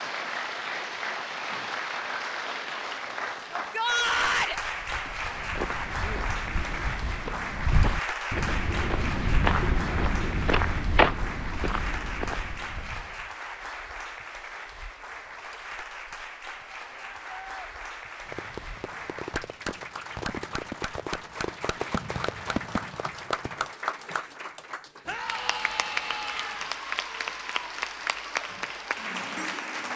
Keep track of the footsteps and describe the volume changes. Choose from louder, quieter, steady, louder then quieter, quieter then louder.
louder then quieter.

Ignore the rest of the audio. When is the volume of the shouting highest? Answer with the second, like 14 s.
4 s.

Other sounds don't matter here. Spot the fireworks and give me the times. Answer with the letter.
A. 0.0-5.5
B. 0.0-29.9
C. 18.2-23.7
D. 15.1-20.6
C.